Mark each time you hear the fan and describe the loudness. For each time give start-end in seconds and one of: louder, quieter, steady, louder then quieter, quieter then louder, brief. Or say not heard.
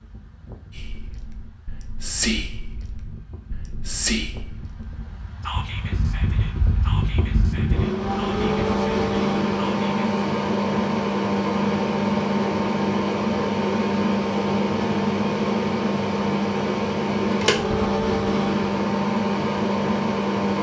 0.0-20.5 louder.